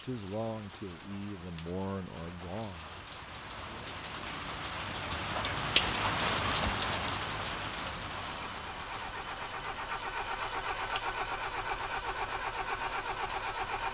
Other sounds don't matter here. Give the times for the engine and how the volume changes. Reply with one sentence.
You can hear the engine from 8.1 to 13.8 s, getting louder.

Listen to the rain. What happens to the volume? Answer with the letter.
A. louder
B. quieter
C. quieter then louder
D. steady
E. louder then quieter
E.